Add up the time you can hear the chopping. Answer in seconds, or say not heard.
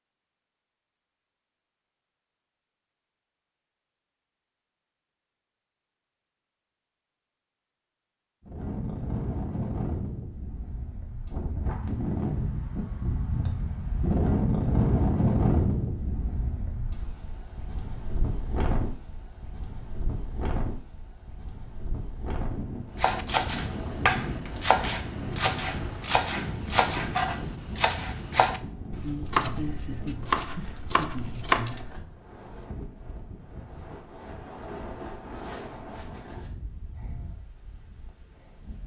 9 s.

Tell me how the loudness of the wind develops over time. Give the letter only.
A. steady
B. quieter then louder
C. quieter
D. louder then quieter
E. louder
C.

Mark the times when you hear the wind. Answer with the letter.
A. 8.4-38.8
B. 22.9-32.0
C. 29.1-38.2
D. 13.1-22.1
A.